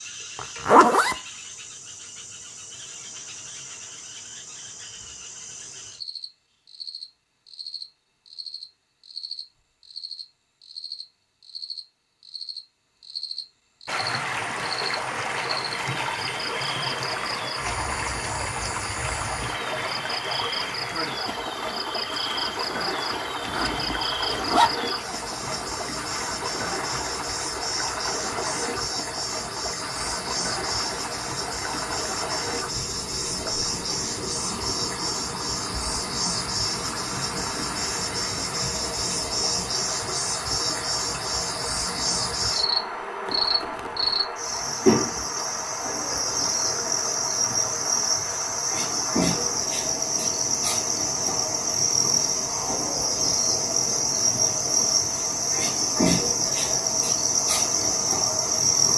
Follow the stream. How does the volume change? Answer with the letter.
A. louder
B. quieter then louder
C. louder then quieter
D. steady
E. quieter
E.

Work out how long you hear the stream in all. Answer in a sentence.
The stream can be heard for 45 seconds in total.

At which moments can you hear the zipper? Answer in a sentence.
The zipper can be heard from 0.3 to 1.1 s, from 23.4 to 24.7 s and from 43.2 to 44.2 s.